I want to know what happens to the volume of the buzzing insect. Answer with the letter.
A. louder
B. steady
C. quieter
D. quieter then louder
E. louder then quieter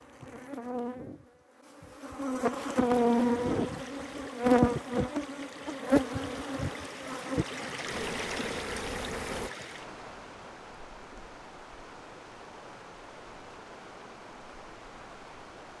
E.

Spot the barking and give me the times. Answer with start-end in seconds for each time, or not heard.
not heard.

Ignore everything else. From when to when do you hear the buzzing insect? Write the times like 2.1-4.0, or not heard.
0.0-9.5.